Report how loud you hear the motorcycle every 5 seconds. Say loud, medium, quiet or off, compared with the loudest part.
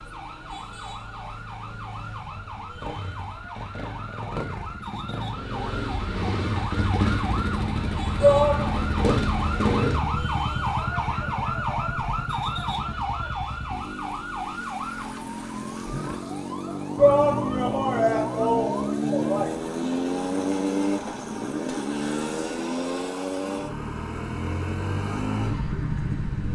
quiet, loud, medium, loud, loud, loud.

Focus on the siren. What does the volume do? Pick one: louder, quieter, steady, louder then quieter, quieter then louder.
louder then quieter.